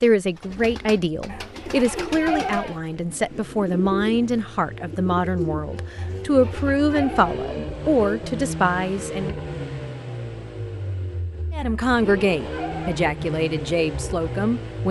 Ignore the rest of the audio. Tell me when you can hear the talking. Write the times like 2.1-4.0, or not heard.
0.0-9.3, 11.5-14.8.